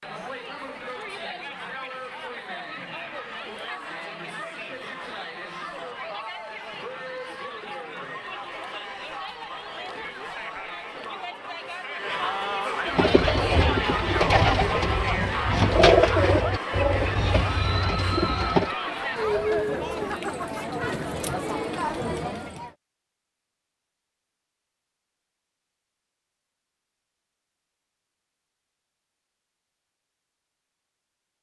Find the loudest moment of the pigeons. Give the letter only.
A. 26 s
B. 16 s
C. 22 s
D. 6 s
B.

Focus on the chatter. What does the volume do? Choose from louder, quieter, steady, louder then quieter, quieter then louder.
louder.